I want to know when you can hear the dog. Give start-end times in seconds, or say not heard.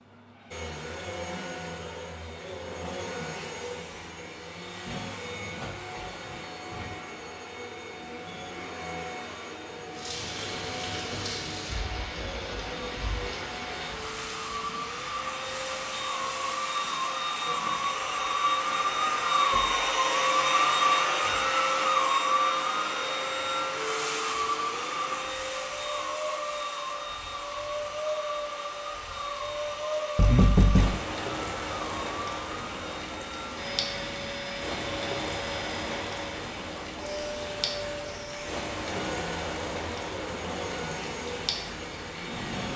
not heard.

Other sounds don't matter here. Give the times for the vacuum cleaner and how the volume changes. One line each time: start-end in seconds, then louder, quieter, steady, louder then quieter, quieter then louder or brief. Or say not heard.
0.0-42.7 louder then quieter.